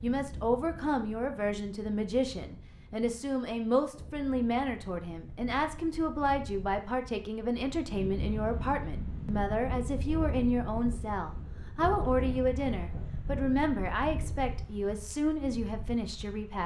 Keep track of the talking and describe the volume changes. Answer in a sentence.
The loudness of the talking stays about the same.